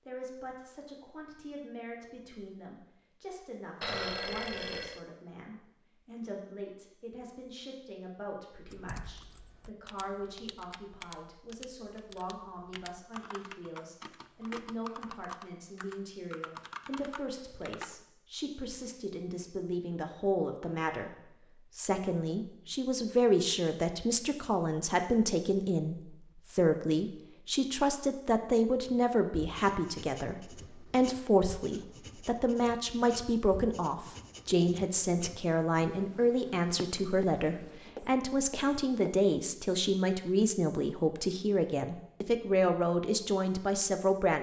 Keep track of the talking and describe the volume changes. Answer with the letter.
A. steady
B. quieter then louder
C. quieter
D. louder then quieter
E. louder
E.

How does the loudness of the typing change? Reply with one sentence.
The volume of the typing goes up.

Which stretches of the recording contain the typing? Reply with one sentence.
You can hear the typing from 8.7 to 18.1 s.